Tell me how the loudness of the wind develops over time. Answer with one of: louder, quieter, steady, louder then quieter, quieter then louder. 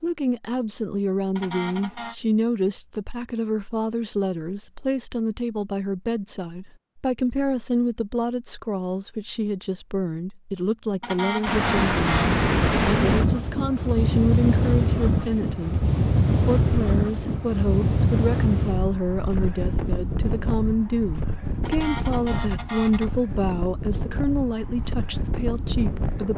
quieter.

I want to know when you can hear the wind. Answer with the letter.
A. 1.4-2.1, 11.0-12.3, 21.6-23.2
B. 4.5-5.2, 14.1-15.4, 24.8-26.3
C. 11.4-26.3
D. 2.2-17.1
C.